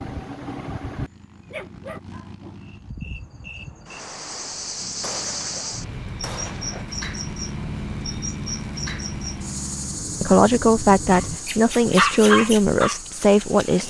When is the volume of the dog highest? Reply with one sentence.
The volume of the dog peaks at 12 seconds.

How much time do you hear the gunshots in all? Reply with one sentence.
The gunshots can be heard for 2 seconds in total.